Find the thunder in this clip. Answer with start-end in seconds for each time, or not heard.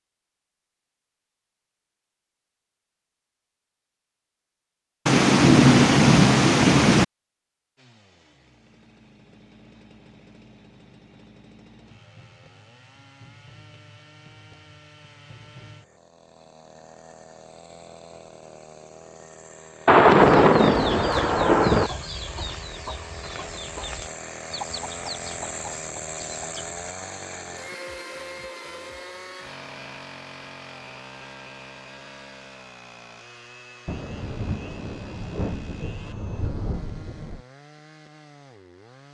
5.0-7.0, 19.9-21.9, 33.9-37.4.